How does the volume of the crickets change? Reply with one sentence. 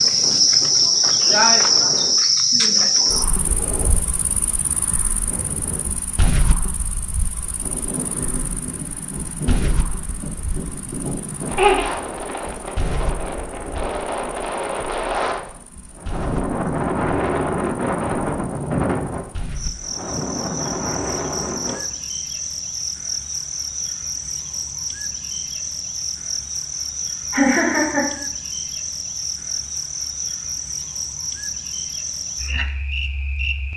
The loudness of the crickets goes down, then up.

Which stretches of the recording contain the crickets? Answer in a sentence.
You can hear the crickets from 0.0 to 33.7 s.